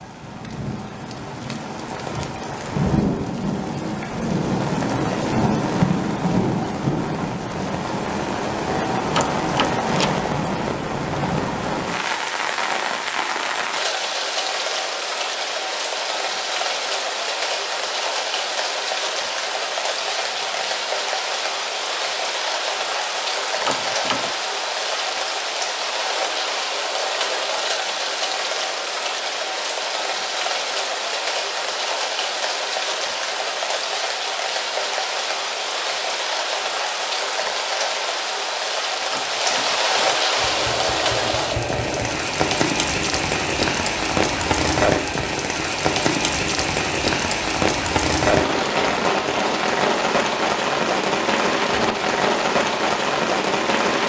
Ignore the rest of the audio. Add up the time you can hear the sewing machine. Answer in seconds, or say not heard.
2 s.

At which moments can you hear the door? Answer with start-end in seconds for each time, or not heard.
9.2-10.2, 23.6-24.3, 39.1-40.1.